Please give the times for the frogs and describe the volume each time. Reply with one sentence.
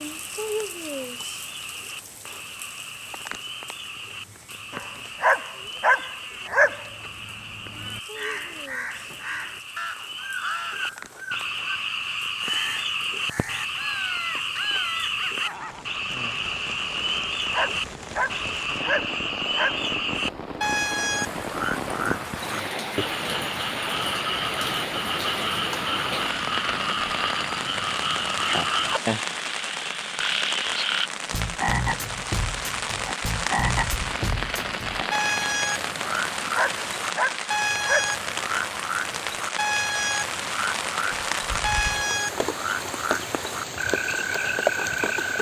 You can hear the frogs from 0.0 to 45.3 s, getting louder.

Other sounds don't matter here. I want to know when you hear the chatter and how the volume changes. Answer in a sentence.
The chatter can't be heard in this clip.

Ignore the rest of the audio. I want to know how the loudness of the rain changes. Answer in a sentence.
The volume of the rain goes up.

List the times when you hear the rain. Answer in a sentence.
You can hear the rain from 0.0 to 45.3 s.